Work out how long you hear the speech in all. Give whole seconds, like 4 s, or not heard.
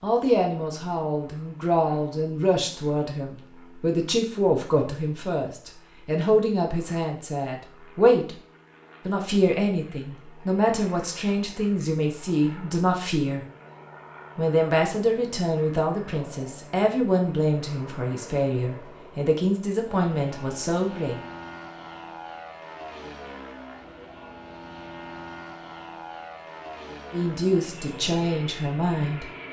22 s.